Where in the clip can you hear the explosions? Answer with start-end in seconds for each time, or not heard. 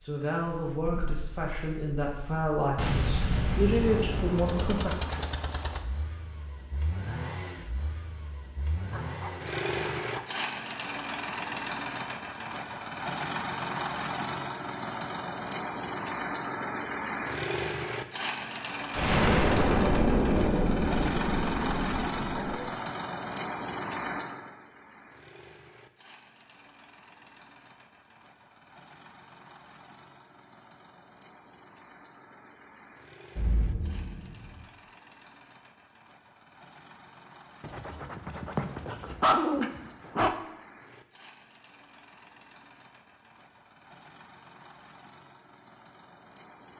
2.8-4.8, 18.9-22.6, 33.4-34.6.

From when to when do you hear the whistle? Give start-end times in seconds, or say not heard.
not heard.